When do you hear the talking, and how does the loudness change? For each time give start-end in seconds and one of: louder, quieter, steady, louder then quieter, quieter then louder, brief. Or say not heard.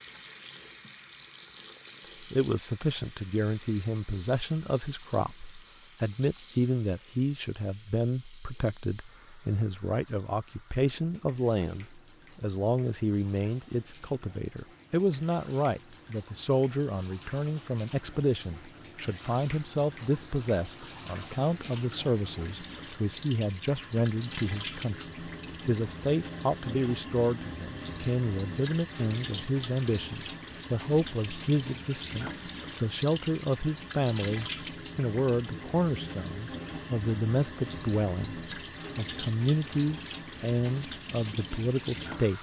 2.2-42.3 steady.